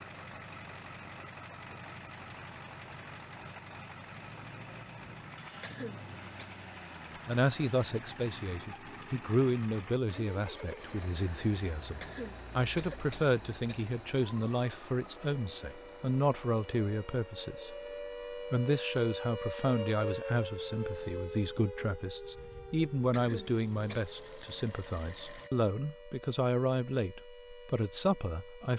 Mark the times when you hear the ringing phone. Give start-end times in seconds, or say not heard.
not heard.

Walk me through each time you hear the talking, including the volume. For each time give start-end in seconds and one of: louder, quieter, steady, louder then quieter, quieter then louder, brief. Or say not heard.
7.2-28.7 steady.